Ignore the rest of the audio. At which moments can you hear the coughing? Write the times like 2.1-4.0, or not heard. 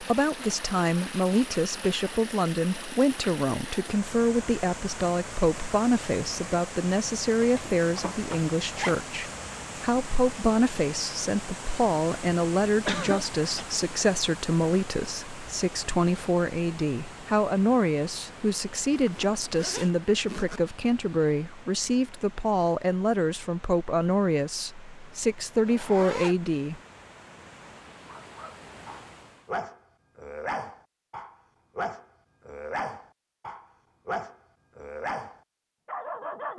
12.8-13.7.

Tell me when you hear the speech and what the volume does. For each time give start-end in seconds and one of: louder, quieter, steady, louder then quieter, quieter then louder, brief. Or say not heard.
0.0-26.8 steady.